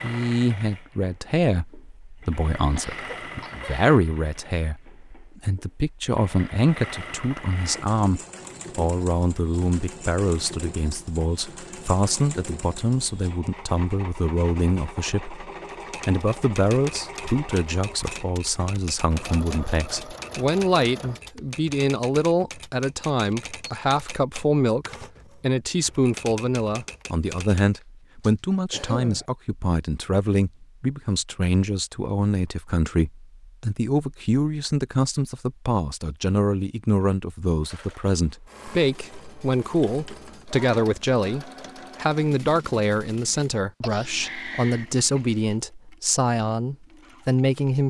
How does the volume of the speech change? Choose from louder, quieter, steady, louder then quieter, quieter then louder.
steady.